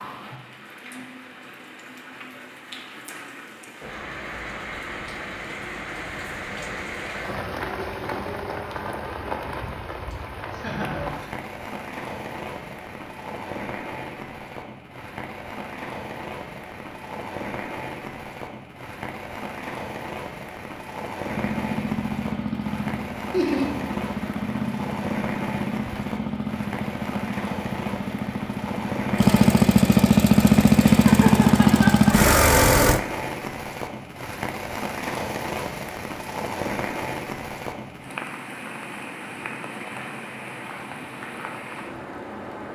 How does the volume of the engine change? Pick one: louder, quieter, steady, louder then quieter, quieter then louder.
louder.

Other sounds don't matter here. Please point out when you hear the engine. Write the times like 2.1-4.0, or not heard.
21.2-33.0.